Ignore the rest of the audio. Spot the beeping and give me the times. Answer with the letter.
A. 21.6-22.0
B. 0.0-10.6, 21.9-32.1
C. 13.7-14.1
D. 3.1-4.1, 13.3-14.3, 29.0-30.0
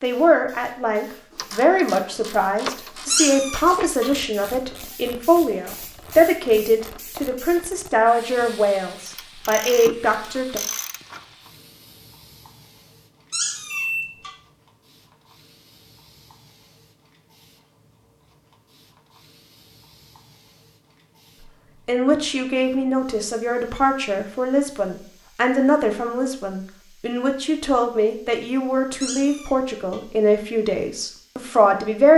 C.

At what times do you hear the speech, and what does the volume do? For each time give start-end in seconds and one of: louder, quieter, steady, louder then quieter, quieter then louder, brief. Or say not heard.
0.0-10.6 steady
21.9-32.1 steady.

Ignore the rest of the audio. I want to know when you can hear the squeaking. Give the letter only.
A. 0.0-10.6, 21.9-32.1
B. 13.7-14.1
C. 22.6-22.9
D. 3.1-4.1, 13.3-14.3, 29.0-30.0
D.